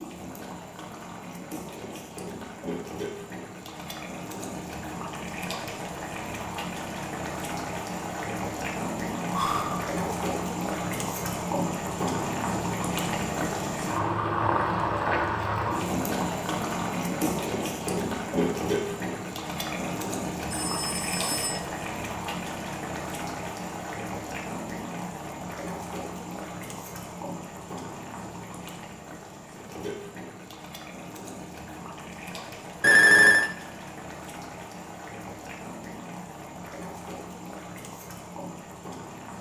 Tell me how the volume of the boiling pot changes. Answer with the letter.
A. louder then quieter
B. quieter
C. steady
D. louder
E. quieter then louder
A.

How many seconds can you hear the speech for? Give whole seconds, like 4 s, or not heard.
not heard.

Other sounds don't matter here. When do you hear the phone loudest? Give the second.
33 s.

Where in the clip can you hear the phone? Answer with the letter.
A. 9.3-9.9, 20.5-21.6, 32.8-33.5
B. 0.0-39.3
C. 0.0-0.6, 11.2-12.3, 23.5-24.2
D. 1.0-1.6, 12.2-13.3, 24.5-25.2
A.